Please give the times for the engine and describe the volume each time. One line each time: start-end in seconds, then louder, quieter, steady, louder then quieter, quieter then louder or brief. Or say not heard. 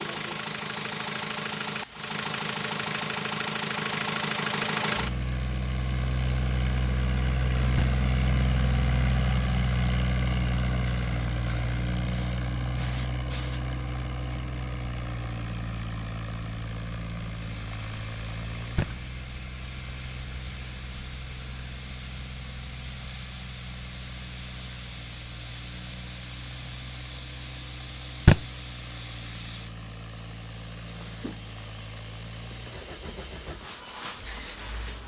0.0-35.0 quieter.